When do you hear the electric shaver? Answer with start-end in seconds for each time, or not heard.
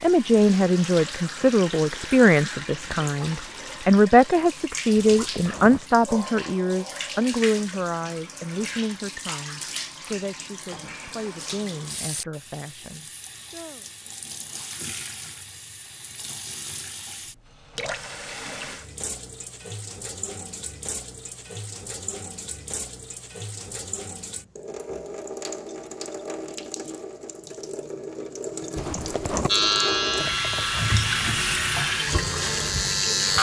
29.4-33.3.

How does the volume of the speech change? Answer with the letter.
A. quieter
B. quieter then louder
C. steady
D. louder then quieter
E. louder
A.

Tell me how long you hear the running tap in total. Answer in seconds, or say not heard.
33 s.